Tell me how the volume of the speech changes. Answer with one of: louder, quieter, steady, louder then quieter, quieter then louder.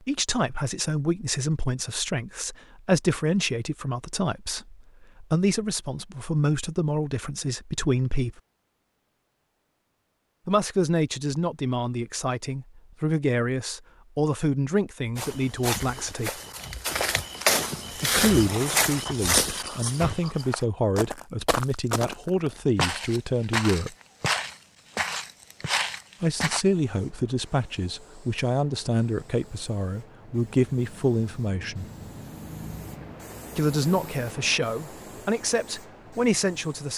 steady.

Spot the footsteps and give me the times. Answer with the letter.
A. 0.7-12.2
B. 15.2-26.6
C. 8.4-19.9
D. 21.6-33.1
B.